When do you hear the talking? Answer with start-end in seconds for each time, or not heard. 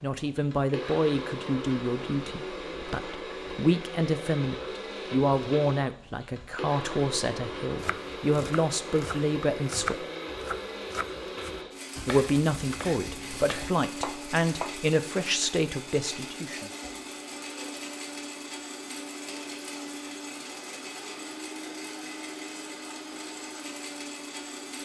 0.0-10.1, 12.1-16.7.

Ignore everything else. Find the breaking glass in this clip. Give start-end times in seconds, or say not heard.
not heard.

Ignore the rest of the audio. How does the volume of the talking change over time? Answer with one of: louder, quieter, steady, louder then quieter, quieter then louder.
steady.